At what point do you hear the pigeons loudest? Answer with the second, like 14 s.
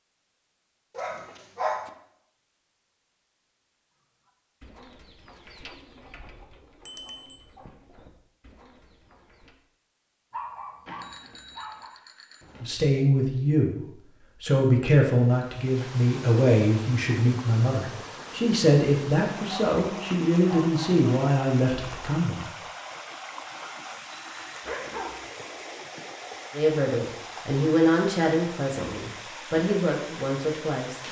6 s.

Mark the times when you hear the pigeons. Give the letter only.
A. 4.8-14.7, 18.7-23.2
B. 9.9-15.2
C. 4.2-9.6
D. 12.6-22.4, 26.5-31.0
C.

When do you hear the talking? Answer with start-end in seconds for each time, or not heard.
12.6-22.4, 26.5-31.0.